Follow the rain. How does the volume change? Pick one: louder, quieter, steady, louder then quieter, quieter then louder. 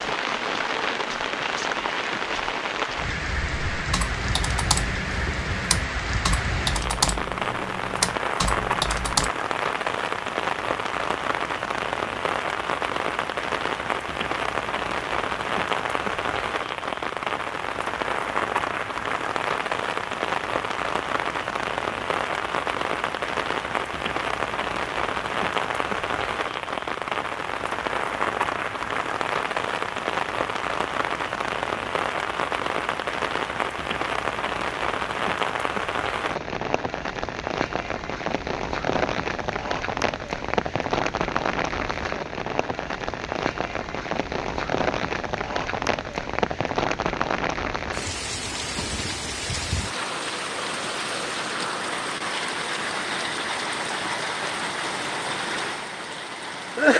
steady.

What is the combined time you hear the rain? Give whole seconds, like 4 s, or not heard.
57 s.